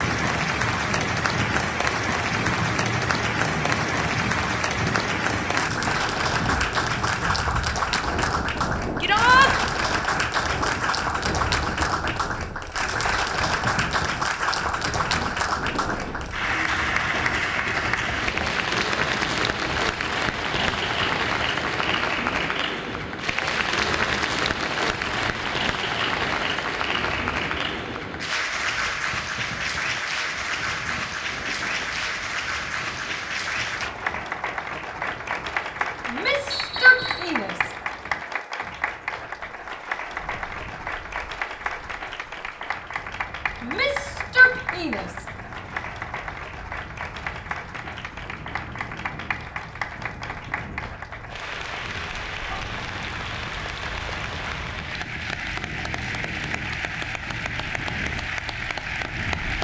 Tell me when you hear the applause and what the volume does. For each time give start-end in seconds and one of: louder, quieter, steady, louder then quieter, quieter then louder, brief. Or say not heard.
0.0-59.6 quieter.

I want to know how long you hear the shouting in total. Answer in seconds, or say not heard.
4 s.